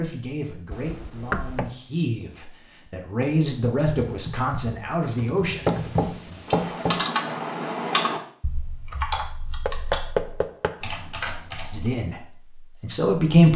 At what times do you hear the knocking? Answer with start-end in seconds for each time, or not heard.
0.7-1.7, 5.7-7.0, 9.7-10.8.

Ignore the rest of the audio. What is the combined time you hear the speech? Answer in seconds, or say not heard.
8 s.